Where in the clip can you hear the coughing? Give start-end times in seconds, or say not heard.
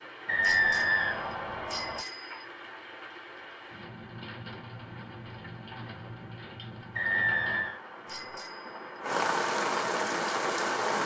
not heard.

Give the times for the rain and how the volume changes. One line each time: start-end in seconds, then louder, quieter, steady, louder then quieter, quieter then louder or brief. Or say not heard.
0.0-11.0 louder.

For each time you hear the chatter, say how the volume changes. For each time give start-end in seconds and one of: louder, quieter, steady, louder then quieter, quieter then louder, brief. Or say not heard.
not heard.